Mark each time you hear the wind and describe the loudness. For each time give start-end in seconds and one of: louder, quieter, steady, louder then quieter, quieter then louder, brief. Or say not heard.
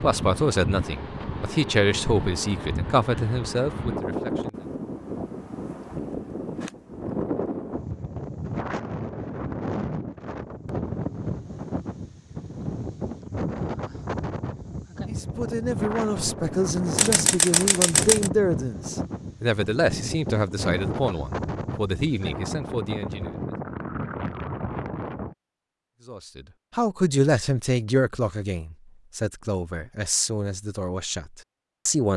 0.0-25.4 steady.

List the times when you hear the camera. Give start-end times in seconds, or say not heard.
16.9-18.3.